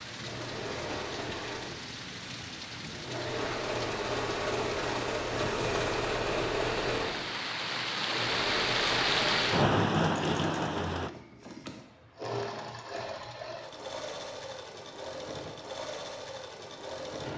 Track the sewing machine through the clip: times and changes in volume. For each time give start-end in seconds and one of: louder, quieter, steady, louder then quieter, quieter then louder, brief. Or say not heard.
0.0-17.3 louder then quieter.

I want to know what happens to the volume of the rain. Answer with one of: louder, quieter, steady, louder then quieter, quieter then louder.
louder.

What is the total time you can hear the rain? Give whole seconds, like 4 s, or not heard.
11 s.